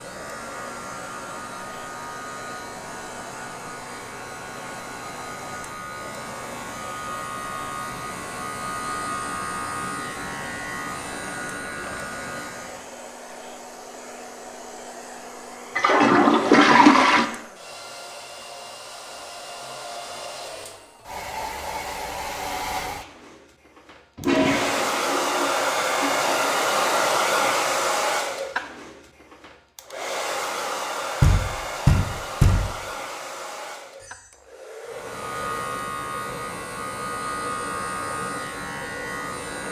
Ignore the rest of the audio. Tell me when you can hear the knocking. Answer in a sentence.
The knocking can be heard from 31.2 to 32.7 s.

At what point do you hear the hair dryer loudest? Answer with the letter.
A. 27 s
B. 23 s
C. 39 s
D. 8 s
A.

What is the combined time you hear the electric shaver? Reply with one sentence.
The electric shaver can be heard for 18 seconds in total.